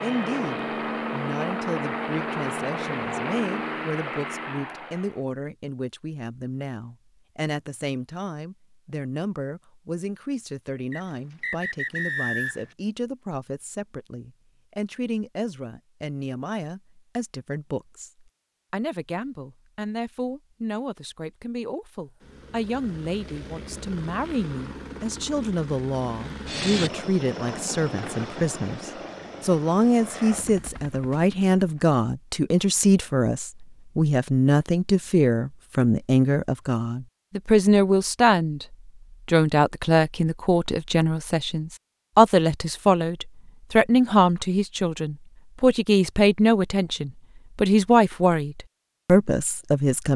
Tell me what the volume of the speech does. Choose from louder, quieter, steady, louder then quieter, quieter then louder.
louder.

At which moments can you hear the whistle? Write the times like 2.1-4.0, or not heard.
10.9-12.7.